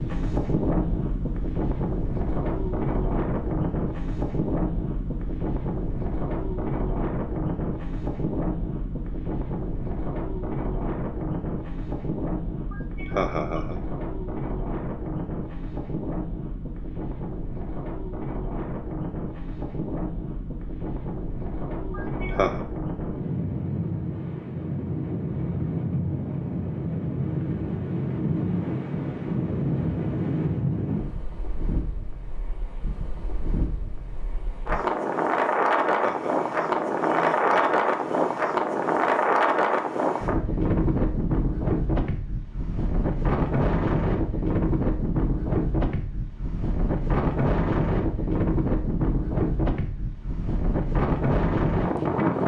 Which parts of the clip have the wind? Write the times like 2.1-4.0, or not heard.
0.0-52.4.